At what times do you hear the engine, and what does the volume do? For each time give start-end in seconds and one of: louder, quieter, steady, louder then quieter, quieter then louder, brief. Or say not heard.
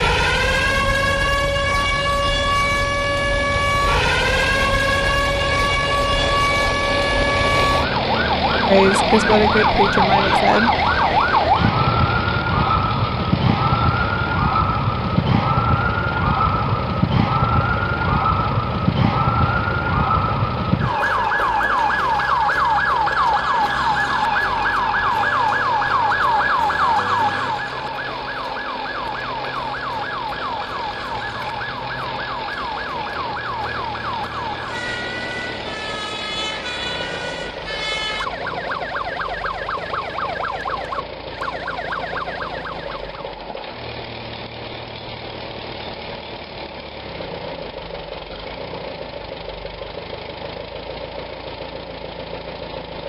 0.2-53.0 quieter.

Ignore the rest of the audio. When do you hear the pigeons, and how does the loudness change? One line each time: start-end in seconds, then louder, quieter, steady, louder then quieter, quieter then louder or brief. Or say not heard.
not heard.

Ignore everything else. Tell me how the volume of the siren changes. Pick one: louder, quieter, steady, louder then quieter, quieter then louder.
quieter.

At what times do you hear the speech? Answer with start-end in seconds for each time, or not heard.
8.7-10.7.